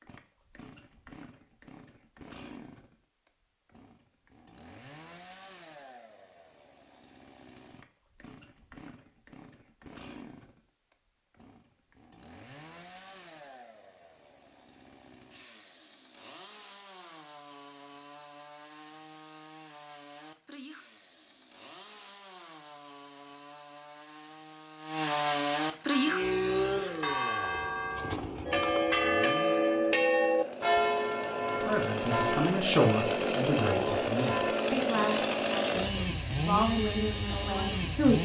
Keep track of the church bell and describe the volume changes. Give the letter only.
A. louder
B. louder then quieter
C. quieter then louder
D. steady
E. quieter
B.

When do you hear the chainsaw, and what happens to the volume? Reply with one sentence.
You can hear the chainsaw from 0.0 to 38.2 s, getting louder.